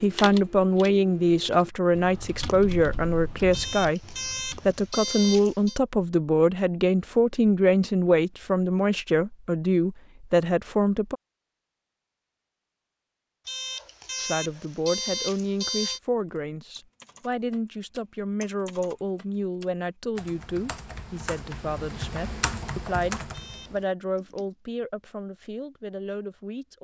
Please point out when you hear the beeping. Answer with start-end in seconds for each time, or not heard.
3.5-5.8, 13.4-16.0, 23.3-23.8.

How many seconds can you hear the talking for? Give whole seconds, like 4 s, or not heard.
23 s.